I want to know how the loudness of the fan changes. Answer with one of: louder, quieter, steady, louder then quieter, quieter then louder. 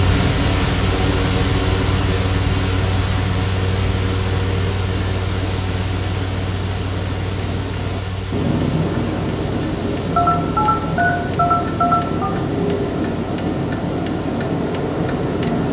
quieter.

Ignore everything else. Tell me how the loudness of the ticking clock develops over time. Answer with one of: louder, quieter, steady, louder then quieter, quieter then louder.
louder.